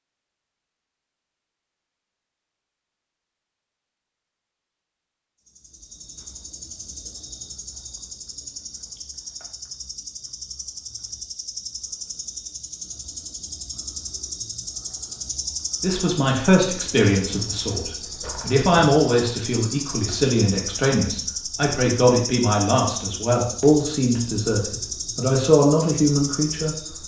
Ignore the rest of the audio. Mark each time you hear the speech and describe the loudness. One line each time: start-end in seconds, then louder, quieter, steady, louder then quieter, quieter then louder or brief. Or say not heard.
15.8-26.8 steady.